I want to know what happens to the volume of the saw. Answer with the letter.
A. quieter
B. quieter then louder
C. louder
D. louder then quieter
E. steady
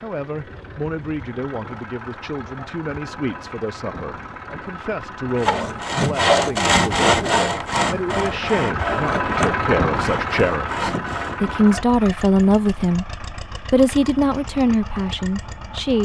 A.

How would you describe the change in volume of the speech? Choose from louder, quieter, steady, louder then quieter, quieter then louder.
louder.